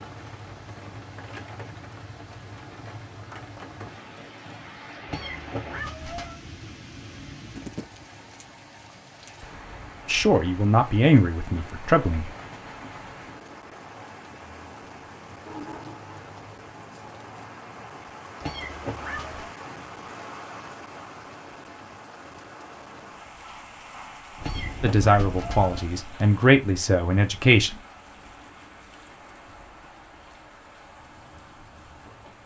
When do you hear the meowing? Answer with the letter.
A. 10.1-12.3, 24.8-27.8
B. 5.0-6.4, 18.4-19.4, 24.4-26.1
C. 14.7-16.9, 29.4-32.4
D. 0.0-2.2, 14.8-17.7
B.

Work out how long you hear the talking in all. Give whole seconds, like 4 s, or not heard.
5 s.